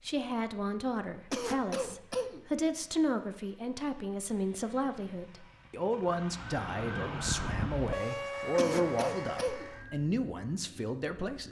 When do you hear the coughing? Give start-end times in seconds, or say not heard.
1.3-2.5, 8.6-9.7.